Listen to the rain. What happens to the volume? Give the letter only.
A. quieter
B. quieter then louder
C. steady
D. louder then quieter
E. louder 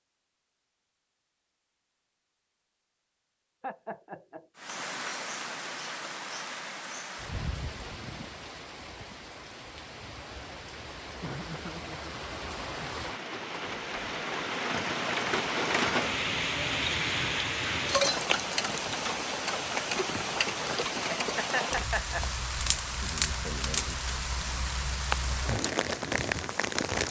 E.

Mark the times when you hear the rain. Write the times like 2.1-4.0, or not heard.
4.5-27.0.